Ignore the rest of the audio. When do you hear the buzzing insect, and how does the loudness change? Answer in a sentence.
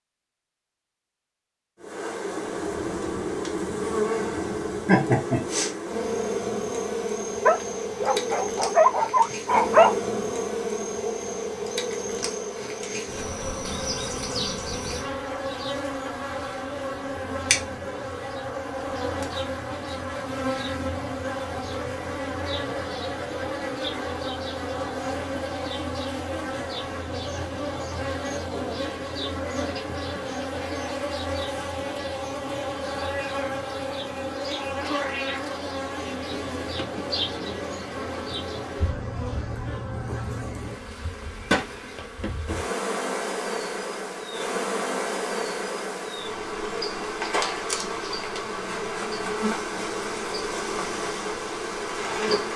The buzzing insect can be heard from 1.8 to 52.5 s, at a steady volume.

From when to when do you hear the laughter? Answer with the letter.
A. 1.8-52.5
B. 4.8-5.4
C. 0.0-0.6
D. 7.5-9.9
B.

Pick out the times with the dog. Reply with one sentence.
The dog can be heard from 7.5 to 9.9 s.